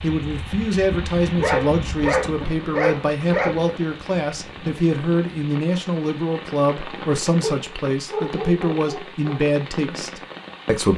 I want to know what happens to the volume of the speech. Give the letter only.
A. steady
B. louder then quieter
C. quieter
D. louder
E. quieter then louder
A.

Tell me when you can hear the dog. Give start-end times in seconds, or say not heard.
1.4-3.6, 7.4-9.4.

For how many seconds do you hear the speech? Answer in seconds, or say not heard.
11 s.